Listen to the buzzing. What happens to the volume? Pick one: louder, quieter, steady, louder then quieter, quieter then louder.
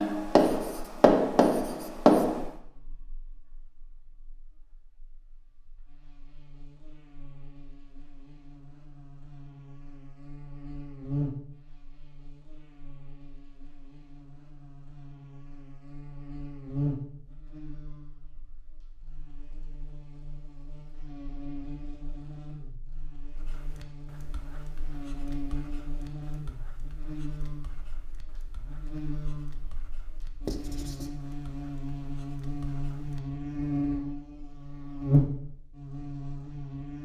louder.